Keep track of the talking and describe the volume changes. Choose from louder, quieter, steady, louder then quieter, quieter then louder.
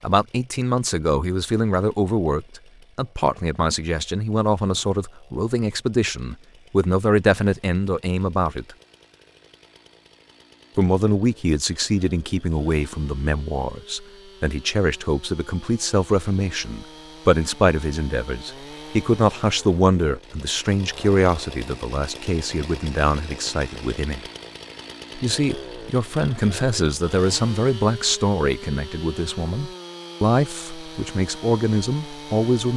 steady.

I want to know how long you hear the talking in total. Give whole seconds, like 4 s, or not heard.
30 s.